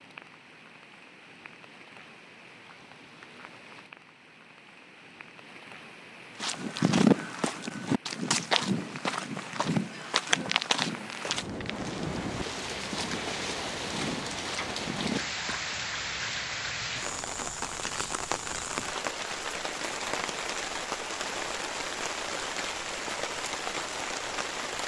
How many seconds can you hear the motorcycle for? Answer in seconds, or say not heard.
not heard.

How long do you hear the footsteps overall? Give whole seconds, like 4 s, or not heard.
9 s.